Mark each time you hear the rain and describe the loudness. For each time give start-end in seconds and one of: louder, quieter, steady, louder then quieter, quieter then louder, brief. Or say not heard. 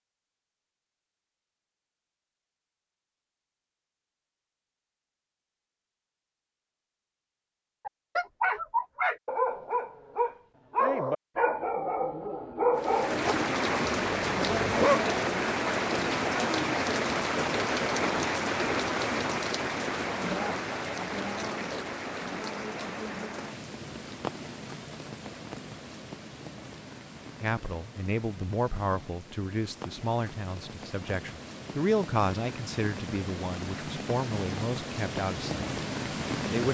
12.8-36.7 quieter then louder.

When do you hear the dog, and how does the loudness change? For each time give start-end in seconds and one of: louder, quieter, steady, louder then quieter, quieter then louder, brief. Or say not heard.
7.8-15.2 quieter.